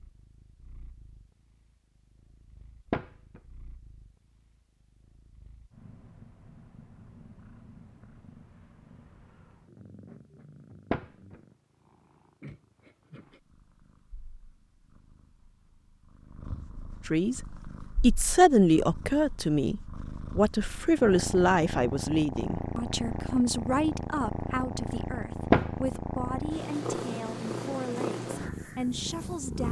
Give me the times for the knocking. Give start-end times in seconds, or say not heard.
2.9-3.4, 10.9-11.3, 25.5-26.0.